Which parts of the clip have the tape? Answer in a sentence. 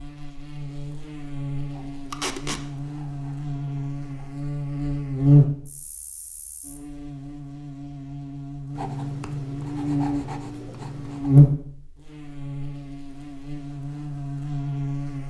The tape can be heard from 2.1 to 2.6 s.